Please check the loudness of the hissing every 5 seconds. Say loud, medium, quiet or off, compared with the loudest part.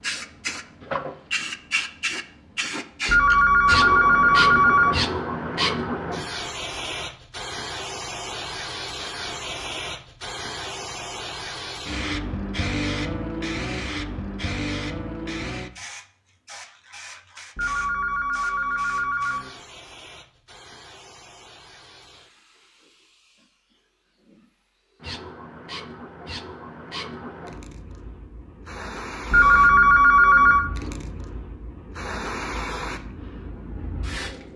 loud, loud, loud, medium, quiet, medium, medium.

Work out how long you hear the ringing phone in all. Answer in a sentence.
You can hear the ringing phone for 5 seconds altogether.